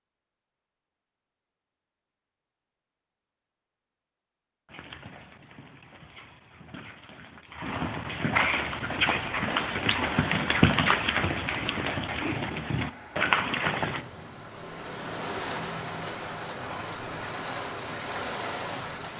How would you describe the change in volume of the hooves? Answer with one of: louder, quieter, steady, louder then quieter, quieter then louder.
louder.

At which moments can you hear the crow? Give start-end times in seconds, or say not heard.
not heard.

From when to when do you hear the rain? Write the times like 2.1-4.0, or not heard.
8.6-19.1.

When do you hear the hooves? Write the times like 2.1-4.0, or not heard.
4.7-14.1.